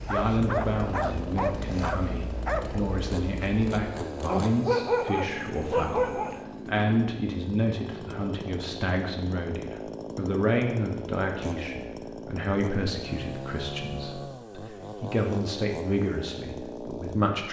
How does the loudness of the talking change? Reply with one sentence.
The loudness of the talking stays about the same.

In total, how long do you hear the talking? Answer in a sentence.
You can hear the talking for 17 seconds altogether.